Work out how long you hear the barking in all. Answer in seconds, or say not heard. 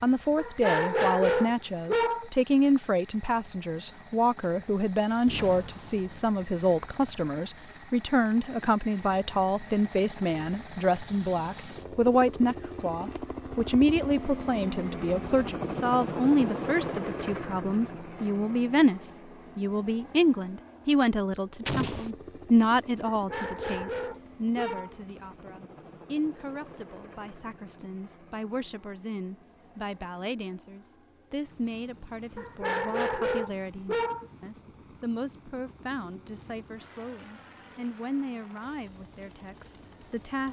6 s.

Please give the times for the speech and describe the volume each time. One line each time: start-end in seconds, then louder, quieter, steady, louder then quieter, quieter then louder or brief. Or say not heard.
0.0-40.4 quieter.